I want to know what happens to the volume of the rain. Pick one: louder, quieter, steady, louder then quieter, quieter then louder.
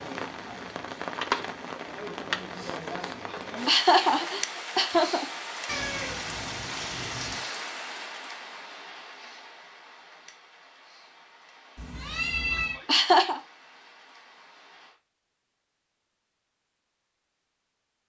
quieter.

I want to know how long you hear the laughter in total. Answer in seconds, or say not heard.
3 s.